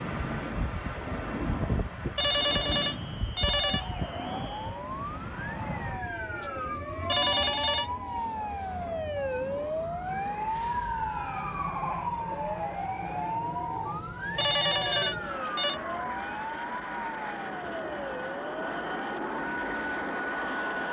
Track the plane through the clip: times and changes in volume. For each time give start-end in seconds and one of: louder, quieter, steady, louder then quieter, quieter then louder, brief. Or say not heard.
0.0-20.8 quieter then louder.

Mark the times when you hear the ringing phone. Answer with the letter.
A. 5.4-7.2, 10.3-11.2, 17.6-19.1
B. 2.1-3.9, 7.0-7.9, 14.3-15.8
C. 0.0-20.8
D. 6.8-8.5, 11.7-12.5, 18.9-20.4
B.